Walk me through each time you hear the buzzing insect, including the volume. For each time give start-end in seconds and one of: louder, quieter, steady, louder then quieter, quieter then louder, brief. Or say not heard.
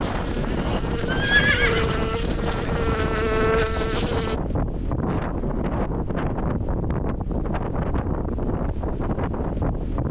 0.0-4.4 louder.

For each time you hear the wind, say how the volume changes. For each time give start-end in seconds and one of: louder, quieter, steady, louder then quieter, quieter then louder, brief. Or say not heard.
0.0-10.0 steady.